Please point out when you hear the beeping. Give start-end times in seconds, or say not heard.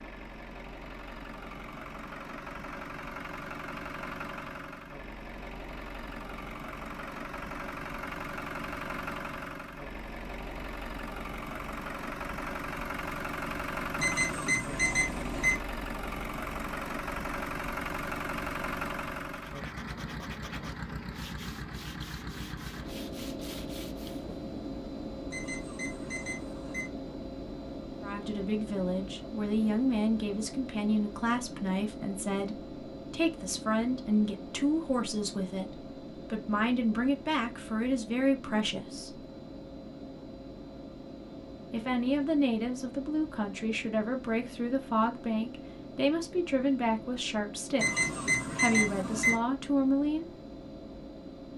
14.0-15.6, 25.3-26.9, 47.8-49.4.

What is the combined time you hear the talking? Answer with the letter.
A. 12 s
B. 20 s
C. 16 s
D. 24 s
B.